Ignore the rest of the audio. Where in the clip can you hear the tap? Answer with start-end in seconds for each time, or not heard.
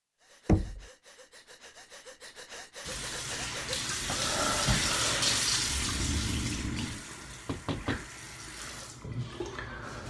2.8-10.0.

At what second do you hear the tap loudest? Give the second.
5 s.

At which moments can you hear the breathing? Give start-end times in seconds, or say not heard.
0.1-7.0.